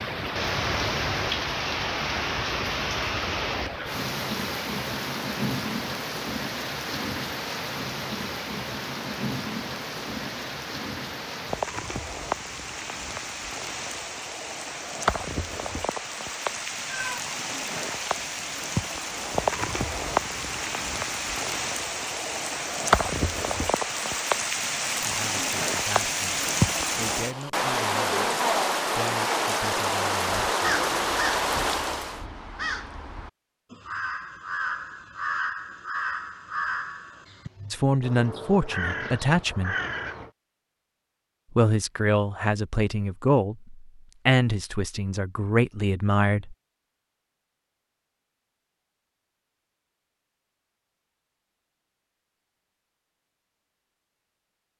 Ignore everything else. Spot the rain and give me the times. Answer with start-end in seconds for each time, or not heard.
0.0-32.2.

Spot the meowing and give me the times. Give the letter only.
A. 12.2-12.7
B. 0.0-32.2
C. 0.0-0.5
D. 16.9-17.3
D.